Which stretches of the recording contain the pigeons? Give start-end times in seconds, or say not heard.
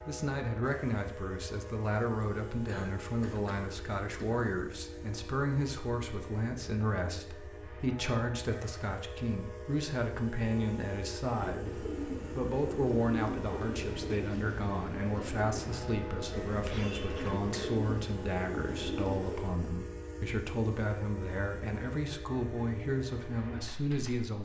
11.3-19.6.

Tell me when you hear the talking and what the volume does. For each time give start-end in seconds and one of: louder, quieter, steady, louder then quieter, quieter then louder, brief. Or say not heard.
0.1-24.3 steady.